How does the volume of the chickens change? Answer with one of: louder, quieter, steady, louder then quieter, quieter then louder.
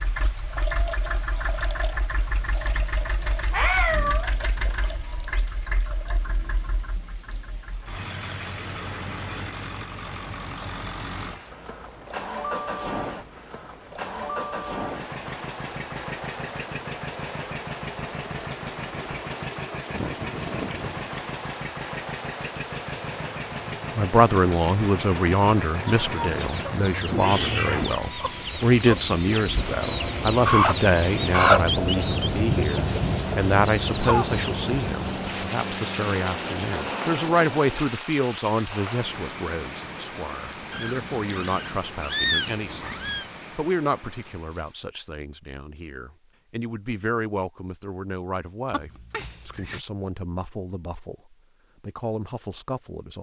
louder then quieter.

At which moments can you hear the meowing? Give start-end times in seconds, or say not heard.
3.3-4.8, 27.1-28.0, 40.7-43.3.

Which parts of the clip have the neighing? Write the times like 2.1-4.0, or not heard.
19.9-21.1, 48.7-49.9.